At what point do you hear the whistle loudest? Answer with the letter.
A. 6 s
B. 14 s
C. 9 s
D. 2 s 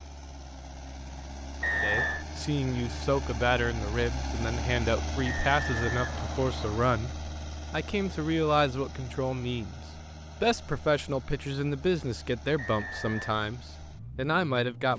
D.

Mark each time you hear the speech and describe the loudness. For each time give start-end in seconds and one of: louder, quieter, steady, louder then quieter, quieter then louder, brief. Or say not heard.
1.7-14.9 steady.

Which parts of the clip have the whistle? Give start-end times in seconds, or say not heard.
1.6-2.2, 5.2-6.8, 12.6-13.3.